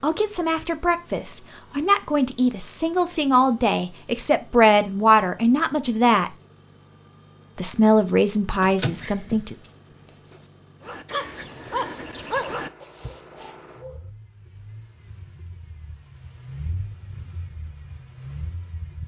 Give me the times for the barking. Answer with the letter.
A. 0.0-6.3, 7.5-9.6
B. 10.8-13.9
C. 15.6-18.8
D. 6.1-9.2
B.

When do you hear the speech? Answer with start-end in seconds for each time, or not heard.
0.0-6.3, 7.5-9.6.